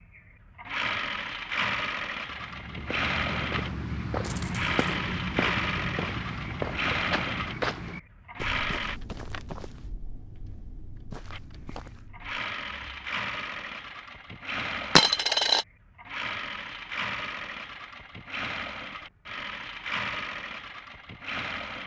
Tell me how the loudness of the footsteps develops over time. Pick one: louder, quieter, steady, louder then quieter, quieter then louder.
quieter.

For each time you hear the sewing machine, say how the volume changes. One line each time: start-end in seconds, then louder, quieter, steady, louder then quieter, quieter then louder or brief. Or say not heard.
0.1-9.0 steady
11.3-21.8 steady.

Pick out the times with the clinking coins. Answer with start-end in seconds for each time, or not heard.
4.2-4.8, 14.9-15.7.